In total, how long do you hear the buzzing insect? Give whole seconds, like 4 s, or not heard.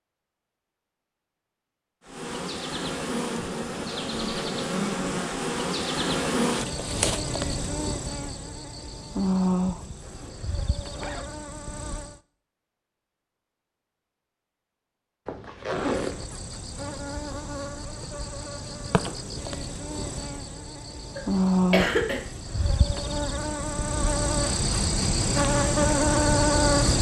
21 s.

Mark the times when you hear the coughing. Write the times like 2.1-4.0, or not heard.
21.1-22.2.